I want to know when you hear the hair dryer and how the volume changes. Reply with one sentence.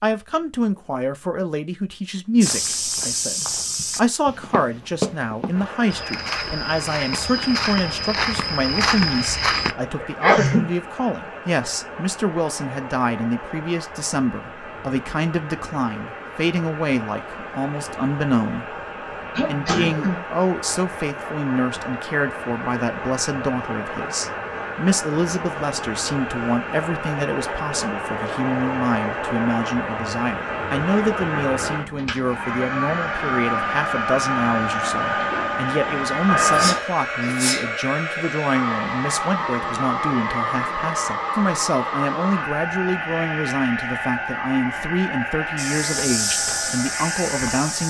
You can hear the hair dryer from 5.5 to 47.8 s, getting louder.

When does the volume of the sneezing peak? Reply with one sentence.
The volume of the sneezing peaks at 10 seconds.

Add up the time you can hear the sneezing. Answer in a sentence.
The sneezing can be heard for 3 seconds in total.